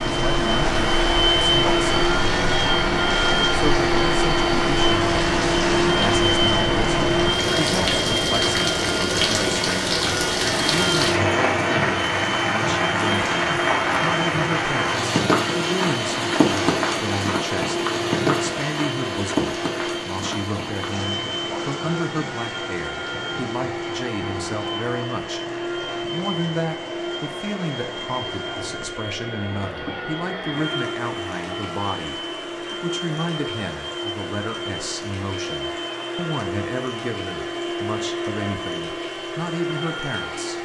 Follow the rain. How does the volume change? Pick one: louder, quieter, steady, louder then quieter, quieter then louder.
quieter.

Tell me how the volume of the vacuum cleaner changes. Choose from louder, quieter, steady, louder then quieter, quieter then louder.
quieter.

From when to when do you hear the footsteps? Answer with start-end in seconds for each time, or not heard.
not heard.